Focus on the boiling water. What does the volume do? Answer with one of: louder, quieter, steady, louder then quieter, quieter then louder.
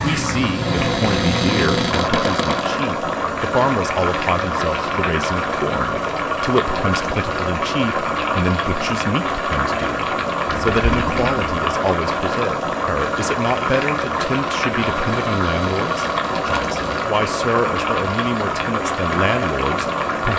steady.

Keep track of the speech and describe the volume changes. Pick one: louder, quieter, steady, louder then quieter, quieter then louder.
steady.